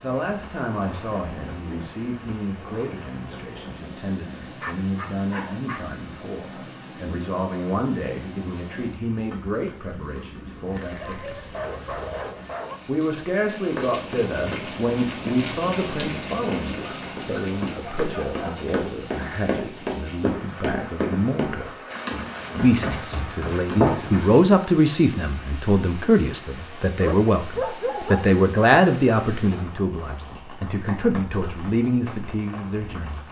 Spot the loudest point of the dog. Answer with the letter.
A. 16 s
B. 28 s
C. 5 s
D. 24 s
B.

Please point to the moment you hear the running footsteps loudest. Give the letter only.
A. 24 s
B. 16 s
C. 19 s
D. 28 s
A.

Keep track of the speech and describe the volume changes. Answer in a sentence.
The loudness of the speech goes up.